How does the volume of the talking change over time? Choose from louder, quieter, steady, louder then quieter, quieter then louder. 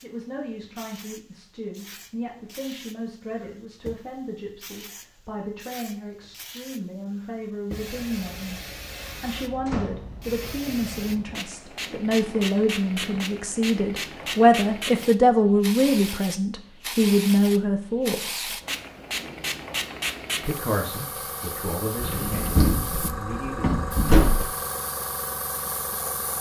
louder then quieter.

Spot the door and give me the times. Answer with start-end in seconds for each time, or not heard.
9.7-10.1, 22.0-24.4.